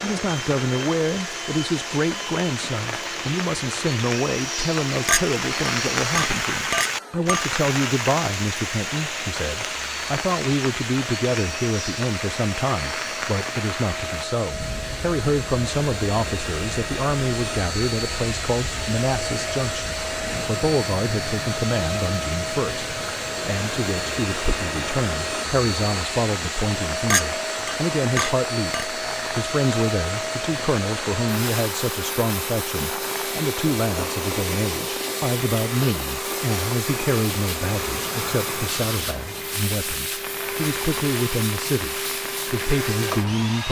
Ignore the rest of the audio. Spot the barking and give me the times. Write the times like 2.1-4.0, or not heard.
not heard.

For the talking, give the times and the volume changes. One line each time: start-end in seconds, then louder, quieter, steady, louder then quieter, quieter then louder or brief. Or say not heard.
0.0-43.6 steady.